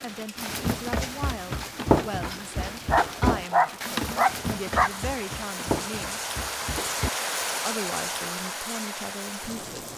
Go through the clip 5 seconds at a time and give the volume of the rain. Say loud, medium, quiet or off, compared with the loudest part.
medium, loud.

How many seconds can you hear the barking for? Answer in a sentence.
You can hear the barking for 2 seconds altogether.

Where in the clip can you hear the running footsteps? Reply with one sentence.
The running footsteps can be heard from 0.3 to 7.1 s.